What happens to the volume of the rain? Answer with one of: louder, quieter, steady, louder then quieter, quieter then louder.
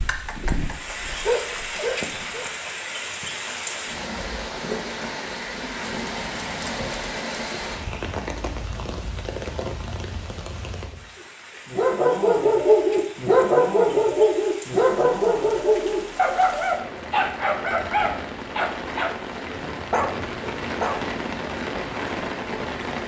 quieter then louder.